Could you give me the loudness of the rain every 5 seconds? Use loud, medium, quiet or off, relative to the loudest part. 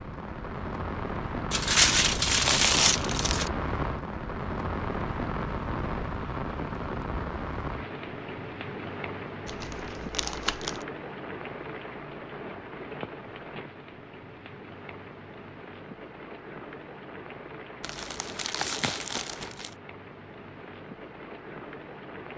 loud, loud, medium, medium, medium.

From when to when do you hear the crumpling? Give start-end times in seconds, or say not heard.
1.5-3.5, 9.4-10.8, 17.8-19.8.